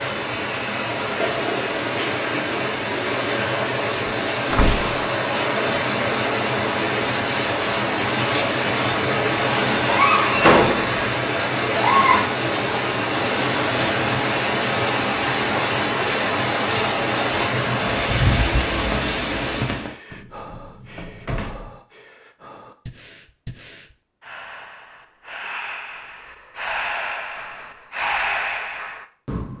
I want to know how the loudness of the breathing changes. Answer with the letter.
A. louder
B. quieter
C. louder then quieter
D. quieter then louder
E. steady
A.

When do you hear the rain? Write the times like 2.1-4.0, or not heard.
0.0-19.9.